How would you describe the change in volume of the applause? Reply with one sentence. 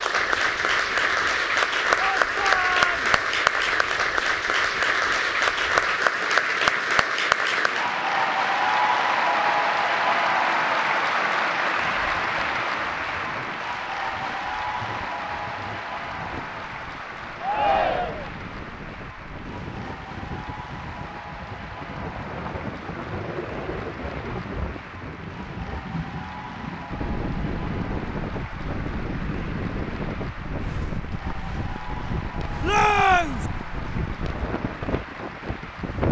The loudness of the applause goes down.